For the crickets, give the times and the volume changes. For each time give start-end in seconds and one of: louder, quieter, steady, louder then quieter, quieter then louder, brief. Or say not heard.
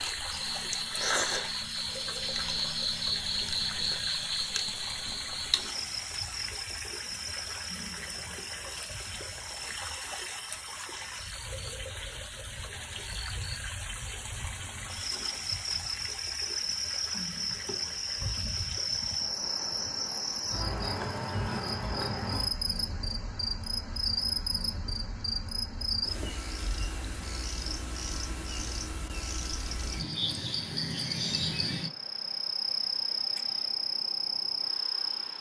0.0-35.3 quieter then louder.